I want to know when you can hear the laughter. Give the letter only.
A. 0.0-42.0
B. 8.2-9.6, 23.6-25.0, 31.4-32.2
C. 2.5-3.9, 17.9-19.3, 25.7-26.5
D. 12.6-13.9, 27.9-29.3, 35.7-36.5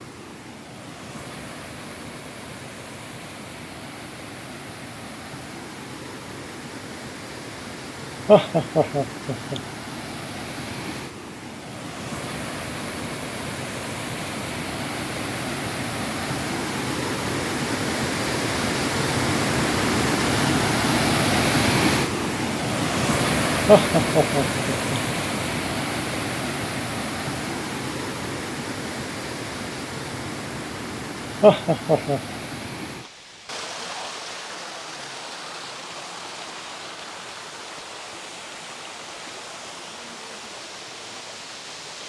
B.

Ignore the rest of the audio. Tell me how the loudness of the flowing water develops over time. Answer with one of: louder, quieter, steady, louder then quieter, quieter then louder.
louder then quieter.